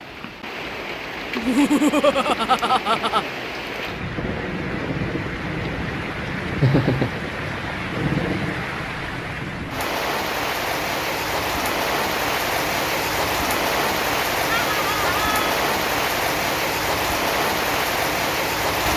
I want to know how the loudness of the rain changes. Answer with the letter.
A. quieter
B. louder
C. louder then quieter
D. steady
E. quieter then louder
B.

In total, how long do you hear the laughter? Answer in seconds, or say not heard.
4 s.